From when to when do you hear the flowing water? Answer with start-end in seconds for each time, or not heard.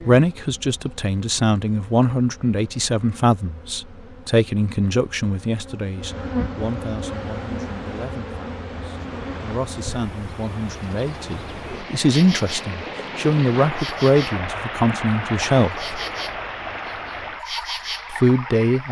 7.0-18.8.